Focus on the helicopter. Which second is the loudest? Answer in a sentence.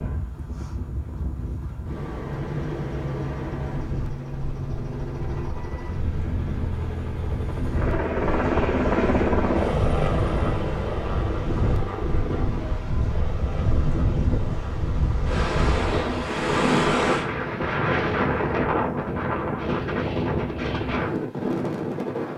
The loudest moment of the helicopter is at 9 seconds.